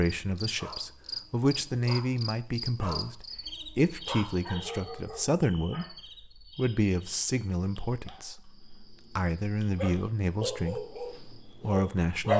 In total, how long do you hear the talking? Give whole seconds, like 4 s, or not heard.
12 s.